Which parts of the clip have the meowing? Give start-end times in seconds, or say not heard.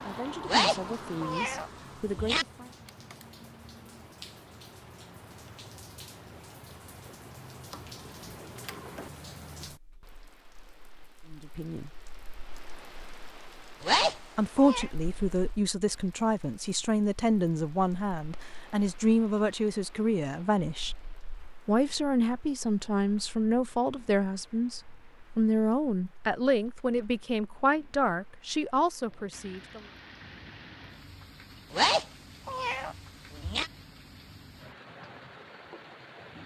0.5-2.5, 13.8-14.9, 31.7-33.7.